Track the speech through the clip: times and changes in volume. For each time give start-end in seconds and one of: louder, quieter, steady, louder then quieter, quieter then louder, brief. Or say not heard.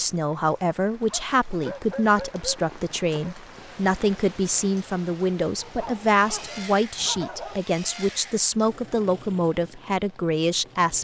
0.0-10.9 steady.